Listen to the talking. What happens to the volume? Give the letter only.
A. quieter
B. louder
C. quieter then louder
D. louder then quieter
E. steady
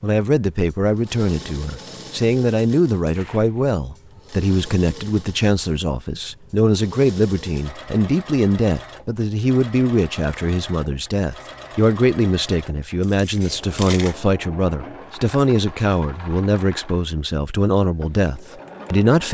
E.